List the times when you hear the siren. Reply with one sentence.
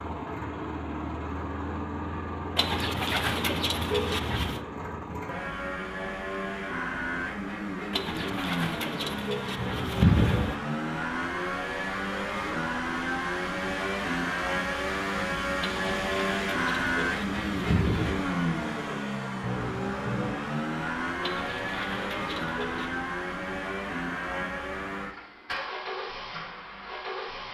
You can't hear the siren here.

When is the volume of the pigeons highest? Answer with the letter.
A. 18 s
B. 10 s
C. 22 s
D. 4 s
B.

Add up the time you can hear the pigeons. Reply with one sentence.
You can hear the pigeons for 9 seconds altogether.